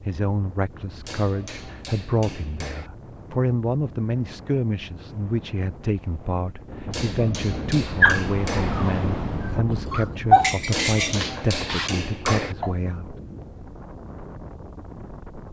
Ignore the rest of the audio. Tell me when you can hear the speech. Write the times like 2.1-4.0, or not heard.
0.0-13.4.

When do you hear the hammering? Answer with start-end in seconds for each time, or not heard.
1.0-2.9, 6.9-8.8, 10.7-12.6.